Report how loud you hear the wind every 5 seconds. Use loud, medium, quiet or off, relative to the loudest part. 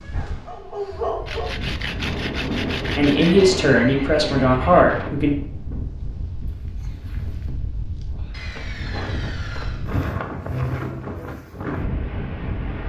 loud, medium, loud.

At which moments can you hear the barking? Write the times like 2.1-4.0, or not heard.
0.0-1.7.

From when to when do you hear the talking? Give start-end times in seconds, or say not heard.
3.0-5.3.